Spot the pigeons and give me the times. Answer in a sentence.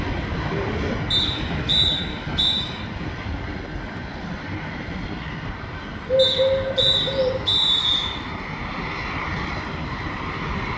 You can hear the pigeons from 0.5 to 1.8 s and from 6.0 to 7.6 s.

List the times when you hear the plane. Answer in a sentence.
You can hear the plane from 0.0 to 10.7 s.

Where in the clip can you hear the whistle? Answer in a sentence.
The whistle can be heard from 1.1 to 2.5 s and from 6.2 to 8.1 s.